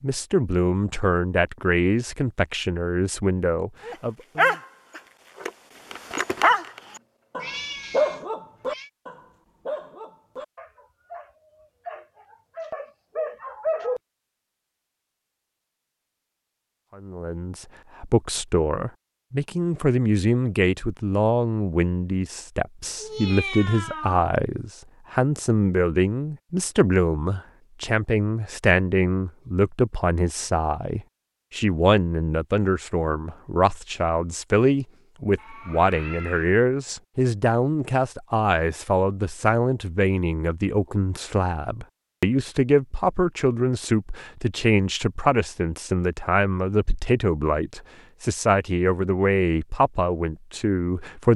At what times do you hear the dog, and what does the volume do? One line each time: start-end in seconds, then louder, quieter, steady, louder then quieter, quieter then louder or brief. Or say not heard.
3.9-14.0 quieter then louder.